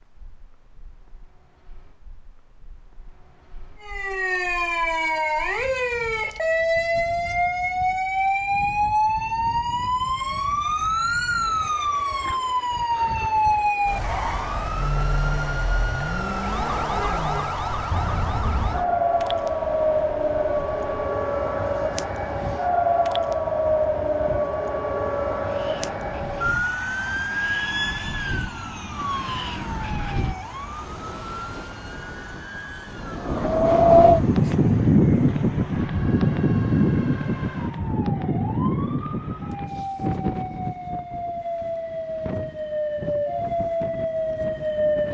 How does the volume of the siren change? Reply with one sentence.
The loudness of the siren goes down, then up.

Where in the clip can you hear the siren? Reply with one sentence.
The siren can be heard from 3.8 to 45.0 s.